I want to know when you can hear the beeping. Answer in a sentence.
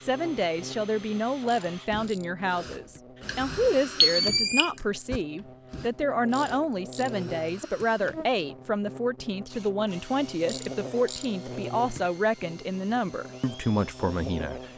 You can hear the beeping from 3.2 to 5.2 s.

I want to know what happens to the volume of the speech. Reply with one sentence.
The loudness of the speech stays about the same.